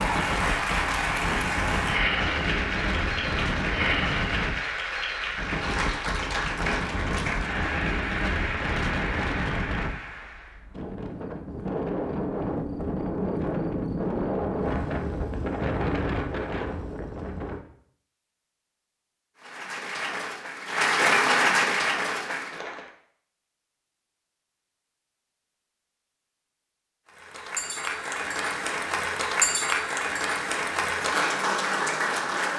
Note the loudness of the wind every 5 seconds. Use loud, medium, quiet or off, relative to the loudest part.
loud, loud, loud, loud, off, off, off.